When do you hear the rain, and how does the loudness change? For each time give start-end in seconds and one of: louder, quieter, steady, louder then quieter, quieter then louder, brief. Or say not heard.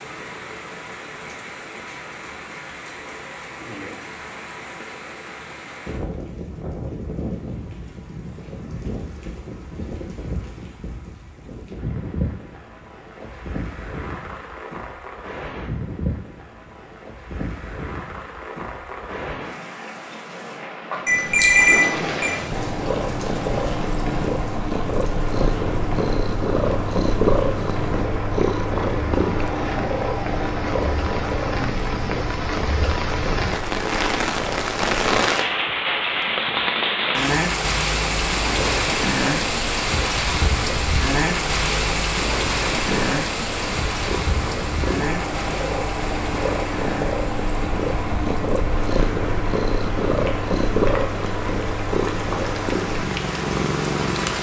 0.0-54.3 louder then quieter.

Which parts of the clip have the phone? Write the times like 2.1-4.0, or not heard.
21.1-22.4.